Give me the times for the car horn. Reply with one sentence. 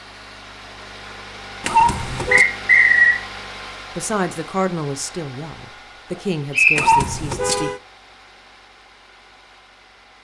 The car horn can be heard from 1.6 to 2.5 s and from 6.8 to 7.8 s.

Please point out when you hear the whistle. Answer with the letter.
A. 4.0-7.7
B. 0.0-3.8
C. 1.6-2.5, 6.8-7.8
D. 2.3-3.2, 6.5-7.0
D.